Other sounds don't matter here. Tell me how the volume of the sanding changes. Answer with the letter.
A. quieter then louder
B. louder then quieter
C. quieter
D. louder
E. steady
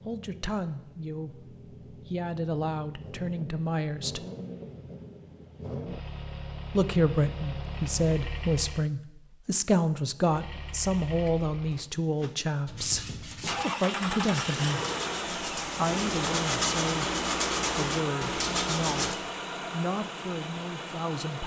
D.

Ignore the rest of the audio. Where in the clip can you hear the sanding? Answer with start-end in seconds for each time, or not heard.
12.7-19.1.